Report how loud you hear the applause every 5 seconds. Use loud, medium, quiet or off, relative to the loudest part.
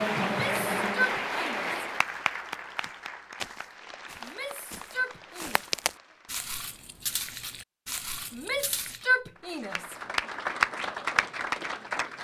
loud, quiet, loud.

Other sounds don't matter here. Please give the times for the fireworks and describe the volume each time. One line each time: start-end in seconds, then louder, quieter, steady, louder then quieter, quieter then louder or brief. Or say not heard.
not heard.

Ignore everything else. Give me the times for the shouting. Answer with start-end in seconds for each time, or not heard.
0.2-1.7, 4.2-5.6, 8.3-9.9.